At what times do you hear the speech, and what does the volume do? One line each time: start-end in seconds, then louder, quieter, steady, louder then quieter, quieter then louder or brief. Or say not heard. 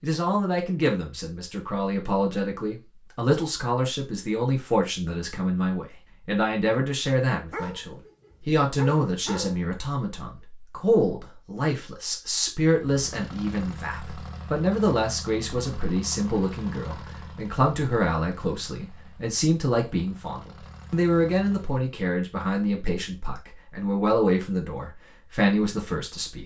0.0-26.4 steady.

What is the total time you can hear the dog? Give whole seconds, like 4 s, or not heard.
2 s.